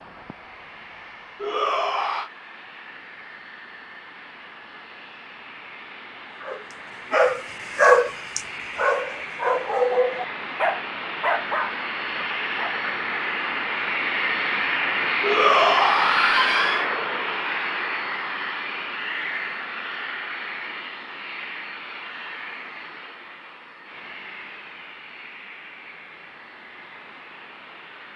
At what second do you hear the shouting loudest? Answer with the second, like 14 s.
16 s.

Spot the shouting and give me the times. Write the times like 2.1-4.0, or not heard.
1.4-2.3, 15.2-16.9.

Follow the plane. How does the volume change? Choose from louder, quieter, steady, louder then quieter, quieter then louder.
louder then quieter.